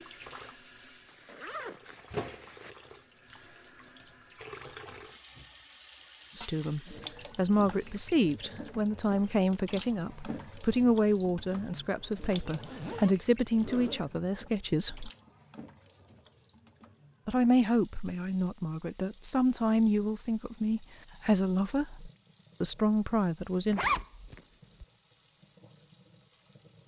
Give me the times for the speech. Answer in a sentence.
You can hear the speech from 6.3 to 15.1 s and from 17.2 to 23.8 s.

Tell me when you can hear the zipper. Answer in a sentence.
The zipper can be heard from 1.1 to 2.7 s, from 12.4 to 14.0 s and from 23.6 to 24.9 s.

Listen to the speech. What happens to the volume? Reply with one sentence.
The volume of the speech stays about the same.